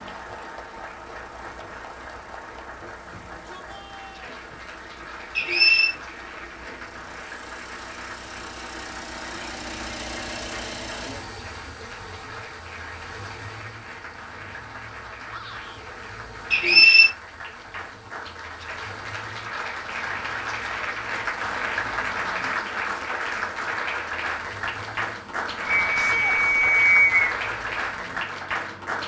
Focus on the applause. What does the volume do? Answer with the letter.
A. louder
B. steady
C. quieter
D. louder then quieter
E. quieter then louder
A.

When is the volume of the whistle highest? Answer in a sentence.
The volume of the whistle peaks at 17 seconds.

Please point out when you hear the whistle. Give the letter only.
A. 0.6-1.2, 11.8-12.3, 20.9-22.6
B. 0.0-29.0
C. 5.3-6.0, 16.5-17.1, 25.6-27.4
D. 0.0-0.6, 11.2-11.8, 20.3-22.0
C.